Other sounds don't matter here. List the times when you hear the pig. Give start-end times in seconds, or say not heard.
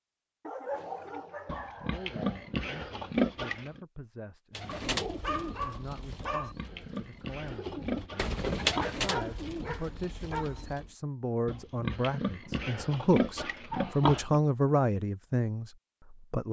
1.4-3.8, 6.2-8.9, 11.4-14.4.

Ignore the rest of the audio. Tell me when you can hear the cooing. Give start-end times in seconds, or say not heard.
4.5-10.9.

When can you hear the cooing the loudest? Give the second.
9 s.